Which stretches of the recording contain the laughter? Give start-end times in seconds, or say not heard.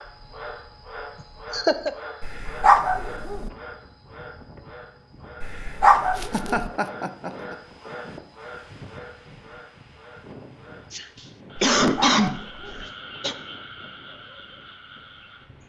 1.2-1.9, 6.2-7.5, 10.9-13.3.